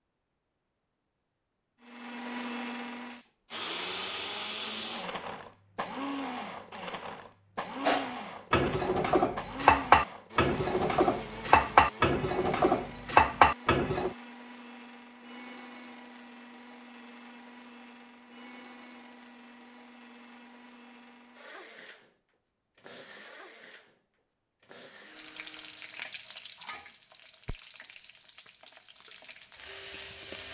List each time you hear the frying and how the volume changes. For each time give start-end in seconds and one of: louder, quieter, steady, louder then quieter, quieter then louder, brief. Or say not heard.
25.1-30.4 quieter then louder.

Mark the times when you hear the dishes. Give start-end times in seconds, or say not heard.
7.8-14.2.